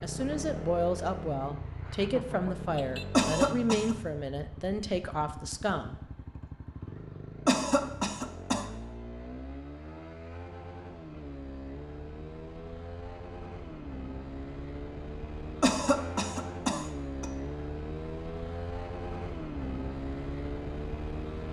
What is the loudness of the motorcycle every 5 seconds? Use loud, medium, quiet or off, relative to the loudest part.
loud, medium, medium, loud, loud.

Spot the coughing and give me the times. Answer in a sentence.
The coughing can be heard from 3.1 to 4.0 s, from 7.5 to 8.7 s and from 15.6 to 17.2 s.